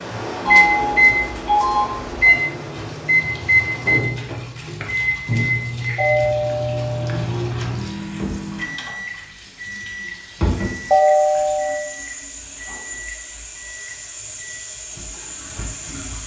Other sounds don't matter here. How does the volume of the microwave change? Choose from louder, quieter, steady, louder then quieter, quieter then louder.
quieter.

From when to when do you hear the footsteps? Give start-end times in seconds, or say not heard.
not heard.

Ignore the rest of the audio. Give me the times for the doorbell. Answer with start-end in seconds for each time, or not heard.
0.5-2.4, 6.0-7.2, 10.9-11.8.